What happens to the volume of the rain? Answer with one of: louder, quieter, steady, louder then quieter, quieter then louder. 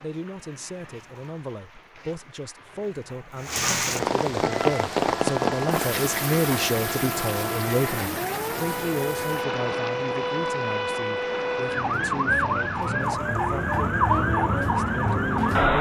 louder then quieter.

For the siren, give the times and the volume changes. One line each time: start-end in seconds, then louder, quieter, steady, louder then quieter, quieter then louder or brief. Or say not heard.
4.4-15.7 louder.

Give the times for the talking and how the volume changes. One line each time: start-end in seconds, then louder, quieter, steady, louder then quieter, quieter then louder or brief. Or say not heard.
0.0-15.7 louder then quieter.